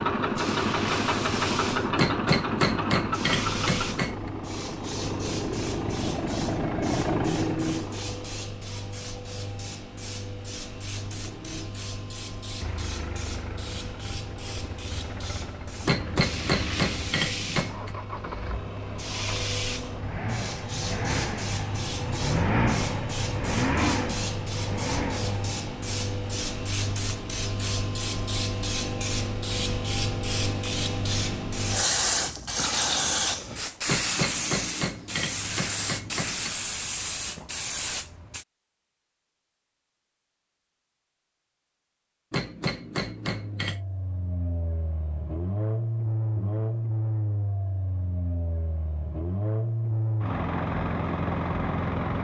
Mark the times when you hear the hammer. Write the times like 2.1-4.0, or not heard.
1.9-4.3, 15.8-17.9, 33.9-36.5, 42.3-43.8.